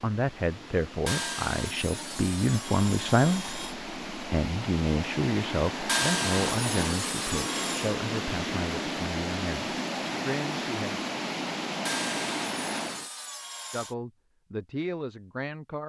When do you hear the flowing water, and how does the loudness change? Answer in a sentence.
The flowing water can be heard from 0.0 to 13.1 s, getting louder.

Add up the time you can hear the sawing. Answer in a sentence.
You can hear the sawing for 7 seconds altogether.